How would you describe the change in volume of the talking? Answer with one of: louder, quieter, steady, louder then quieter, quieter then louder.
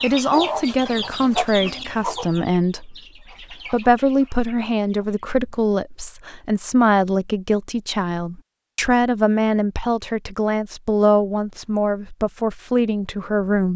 steady.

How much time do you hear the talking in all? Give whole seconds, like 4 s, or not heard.
14 s.